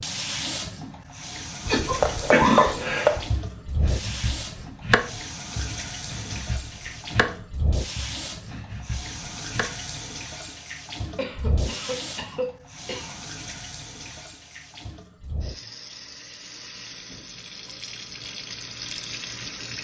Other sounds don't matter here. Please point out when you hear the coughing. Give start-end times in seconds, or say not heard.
1.6-3.3, 11.2-13.2.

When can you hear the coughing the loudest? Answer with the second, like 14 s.
2 s.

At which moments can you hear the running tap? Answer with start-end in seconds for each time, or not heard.
0.0-19.8.